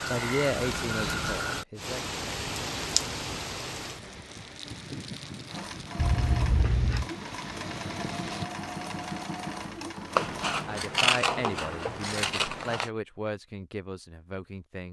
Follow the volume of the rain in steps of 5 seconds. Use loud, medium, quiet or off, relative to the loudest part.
loud, medium, off.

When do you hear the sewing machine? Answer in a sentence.
The sewing machine can be heard from 5.5 to 10.7 s.